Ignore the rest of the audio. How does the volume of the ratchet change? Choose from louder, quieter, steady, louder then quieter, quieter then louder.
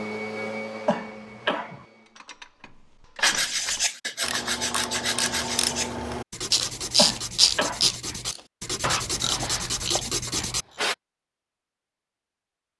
louder then quieter.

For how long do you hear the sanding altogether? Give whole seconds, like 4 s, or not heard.
8 s.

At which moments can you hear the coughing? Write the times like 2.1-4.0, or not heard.
0.8-1.9, 7.0-8.0.